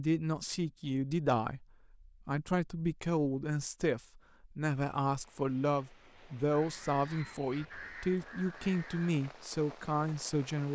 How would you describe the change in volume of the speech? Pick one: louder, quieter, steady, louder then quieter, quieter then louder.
steady.